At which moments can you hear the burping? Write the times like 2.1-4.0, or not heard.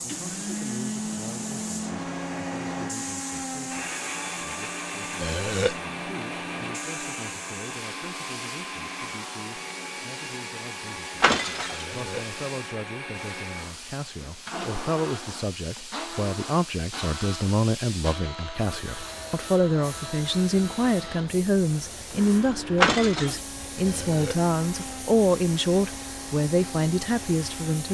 5.2-5.8, 11.7-12.3, 23.9-24.4.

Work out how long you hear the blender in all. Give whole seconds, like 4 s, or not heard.
28 s.